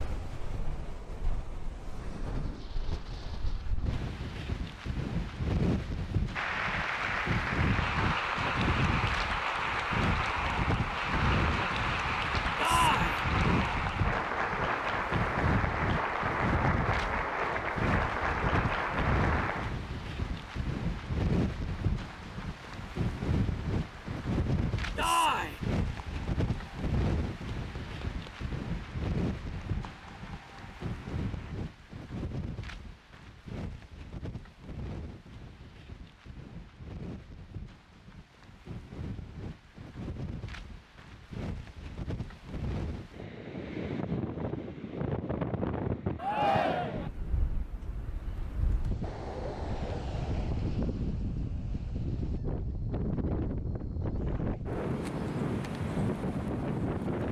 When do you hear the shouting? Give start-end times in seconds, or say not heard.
12.6-13.2, 24.9-25.6, 46.1-47.1.